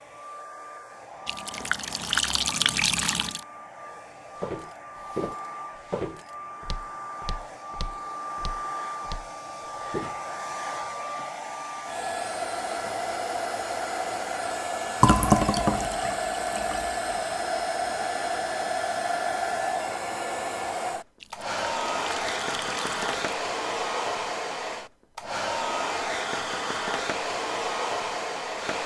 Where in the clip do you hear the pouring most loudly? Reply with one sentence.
The loudest moment of the pouring is at 15 seconds.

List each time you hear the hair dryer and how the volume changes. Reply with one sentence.
The hair dryer can be heard from 0.0 to 28.8 s, getting louder.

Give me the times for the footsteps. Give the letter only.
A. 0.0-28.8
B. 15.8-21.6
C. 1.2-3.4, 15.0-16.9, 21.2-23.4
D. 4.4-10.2
D.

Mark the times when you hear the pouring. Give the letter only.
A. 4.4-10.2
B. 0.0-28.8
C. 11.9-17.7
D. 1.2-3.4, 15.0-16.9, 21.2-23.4
D.